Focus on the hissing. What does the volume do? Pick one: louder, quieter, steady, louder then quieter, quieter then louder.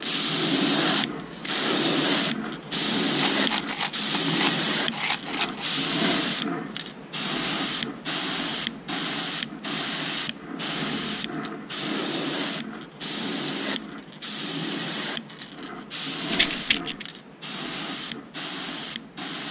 quieter.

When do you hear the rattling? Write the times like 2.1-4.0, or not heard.
3.1-5.7, 16.3-17.1.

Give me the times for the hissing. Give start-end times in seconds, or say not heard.
0.0-19.4.